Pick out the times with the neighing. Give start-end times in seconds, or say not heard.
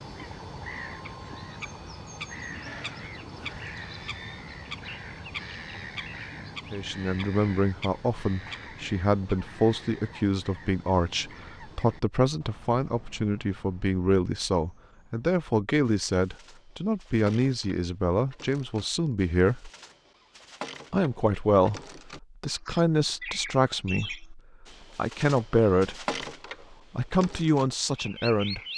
2.6-4.5.